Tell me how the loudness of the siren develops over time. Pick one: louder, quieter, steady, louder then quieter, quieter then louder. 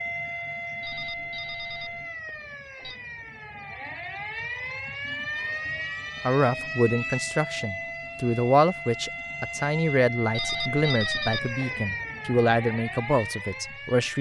steady.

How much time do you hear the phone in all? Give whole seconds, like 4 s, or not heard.
3 s.